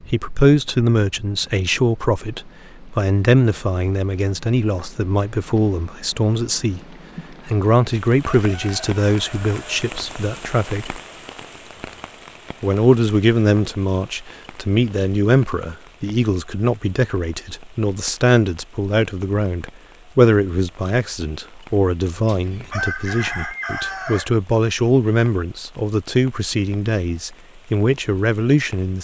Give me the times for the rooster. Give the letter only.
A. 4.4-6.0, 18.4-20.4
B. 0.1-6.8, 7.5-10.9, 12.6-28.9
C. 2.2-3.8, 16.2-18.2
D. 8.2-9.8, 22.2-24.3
D.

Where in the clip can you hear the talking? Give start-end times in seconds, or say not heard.
0.1-6.8, 7.5-10.9, 12.6-28.9.